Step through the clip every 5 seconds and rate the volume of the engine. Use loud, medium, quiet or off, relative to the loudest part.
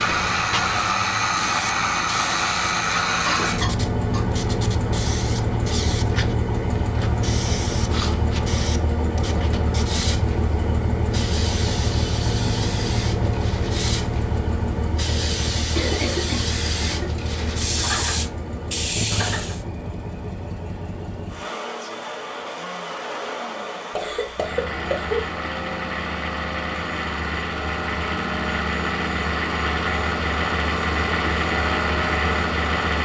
loud, loud, loud, medium, medium, loud, loud.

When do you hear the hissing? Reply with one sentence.
The hissing can be heard from 0.0 to 19.6 s.